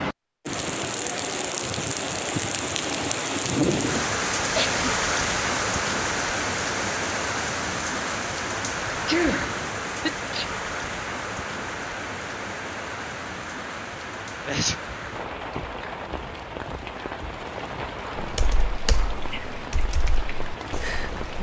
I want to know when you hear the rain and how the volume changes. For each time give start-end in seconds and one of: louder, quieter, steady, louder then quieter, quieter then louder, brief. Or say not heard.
0.0-21.3 quieter.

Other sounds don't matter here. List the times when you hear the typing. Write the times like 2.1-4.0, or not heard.
18.1-21.3.